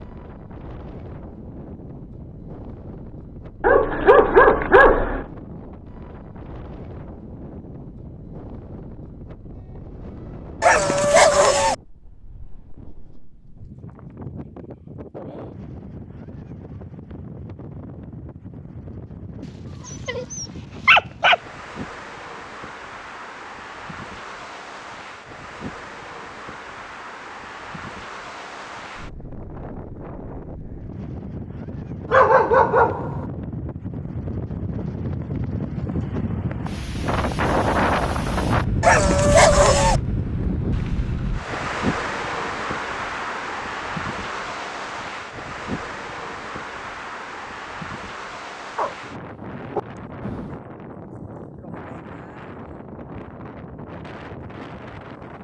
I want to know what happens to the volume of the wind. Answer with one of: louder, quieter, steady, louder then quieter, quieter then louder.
louder then quieter.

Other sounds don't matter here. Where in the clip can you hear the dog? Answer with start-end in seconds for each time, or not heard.
3.6-5.2, 10.6-11.8, 20.1-21.4, 32.1-33.2, 38.8-40.0, 48.8-50.6.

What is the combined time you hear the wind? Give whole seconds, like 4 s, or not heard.
55 s.